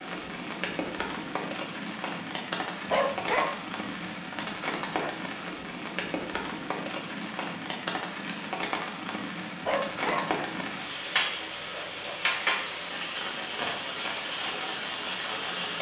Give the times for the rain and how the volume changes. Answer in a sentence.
The rain can be heard from 0.0 to 15.7 s, at a steady volume.